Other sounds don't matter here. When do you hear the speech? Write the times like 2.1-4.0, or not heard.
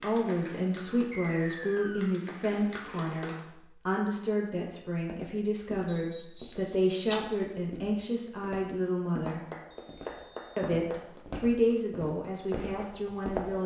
0.0-9.4, 10.6-13.6.